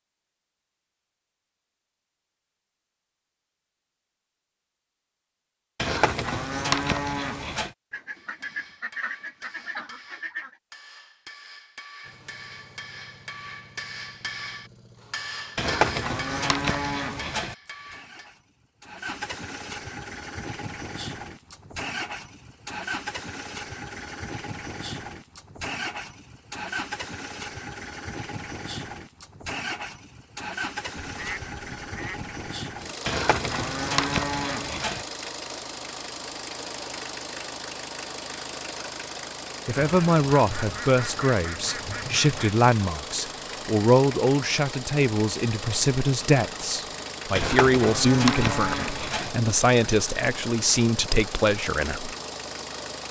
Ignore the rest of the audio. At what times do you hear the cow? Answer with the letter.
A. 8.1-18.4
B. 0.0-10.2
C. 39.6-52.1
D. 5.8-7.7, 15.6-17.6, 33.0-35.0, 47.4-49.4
D.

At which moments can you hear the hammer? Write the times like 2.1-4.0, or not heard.
8.1-18.4.